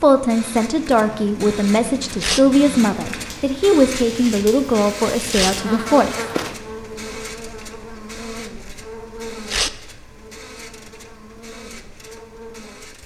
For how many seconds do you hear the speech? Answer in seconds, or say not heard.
6 s.